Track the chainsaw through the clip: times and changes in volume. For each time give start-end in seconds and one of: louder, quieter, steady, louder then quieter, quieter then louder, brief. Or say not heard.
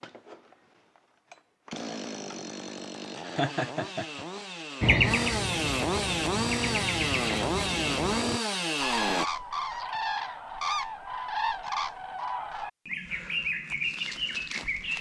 0.0-9.2 louder.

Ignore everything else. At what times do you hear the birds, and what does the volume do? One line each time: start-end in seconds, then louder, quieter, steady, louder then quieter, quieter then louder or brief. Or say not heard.
4.8-14.9 steady.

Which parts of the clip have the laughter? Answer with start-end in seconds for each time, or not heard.
3.4-4.2.